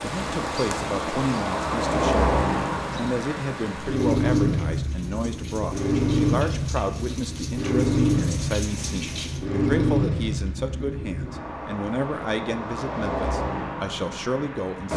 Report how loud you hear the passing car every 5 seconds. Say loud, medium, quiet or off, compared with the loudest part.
loud, loud, medium.